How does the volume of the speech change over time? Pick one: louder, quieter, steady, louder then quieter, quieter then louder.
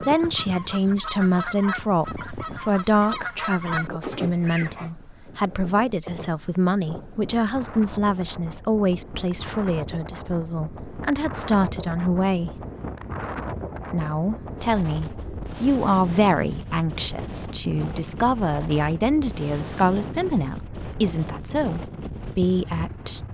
steady.